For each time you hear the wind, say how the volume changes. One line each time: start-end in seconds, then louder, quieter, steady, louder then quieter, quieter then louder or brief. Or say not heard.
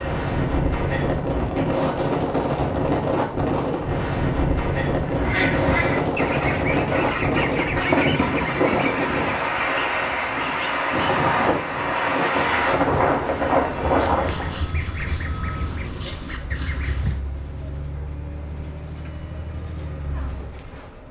0.0-14.7 steady.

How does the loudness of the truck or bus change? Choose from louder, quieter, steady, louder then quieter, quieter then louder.
steady.